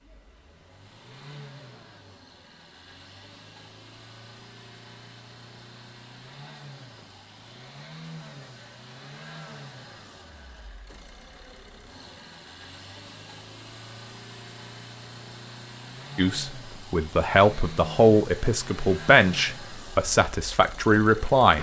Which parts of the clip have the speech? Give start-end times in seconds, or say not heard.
16.1-21.5.